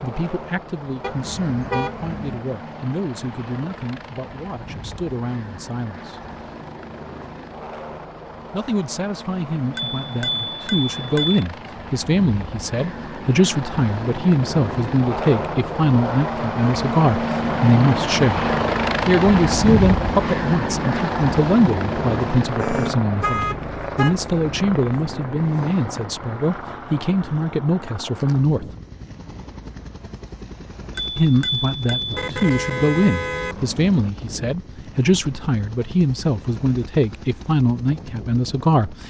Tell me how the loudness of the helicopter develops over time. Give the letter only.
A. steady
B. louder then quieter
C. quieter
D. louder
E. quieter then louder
B.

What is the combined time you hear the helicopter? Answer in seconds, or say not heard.
39 s.